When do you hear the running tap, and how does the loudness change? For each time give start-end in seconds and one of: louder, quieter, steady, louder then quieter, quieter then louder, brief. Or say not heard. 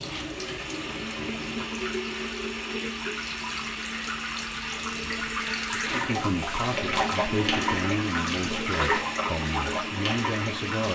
0.0-10.8 louder.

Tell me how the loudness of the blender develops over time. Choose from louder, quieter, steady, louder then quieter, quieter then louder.
steady.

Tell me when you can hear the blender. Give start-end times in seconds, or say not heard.
0.0-10.8.